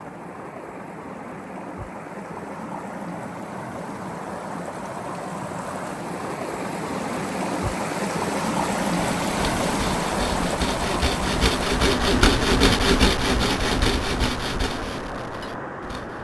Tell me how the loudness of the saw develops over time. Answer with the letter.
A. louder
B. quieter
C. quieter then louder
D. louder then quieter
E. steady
D.